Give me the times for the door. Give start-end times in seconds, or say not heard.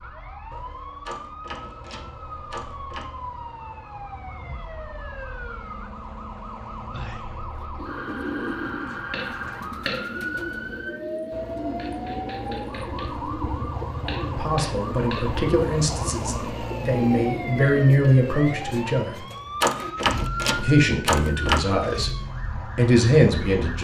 1.1-3.0, 19.6-21.6.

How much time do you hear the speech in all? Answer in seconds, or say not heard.
8 s.